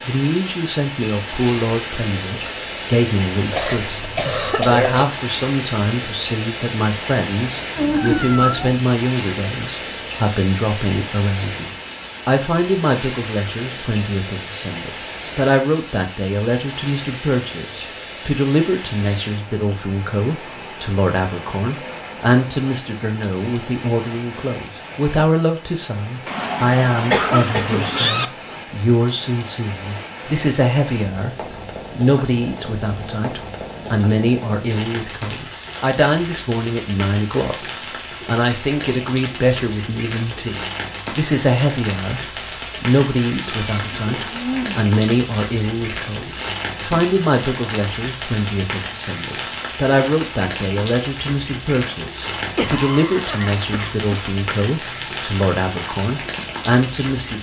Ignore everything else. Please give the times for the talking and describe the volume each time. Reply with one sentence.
The talking can be heard from 0.1 to 57.3 s, at a steady volume.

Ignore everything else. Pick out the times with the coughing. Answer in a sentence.
The coughing can be heard from 3.5 to 5.0 s, from 27.1 to 27.9 s and from 52.5 to 54.3 s.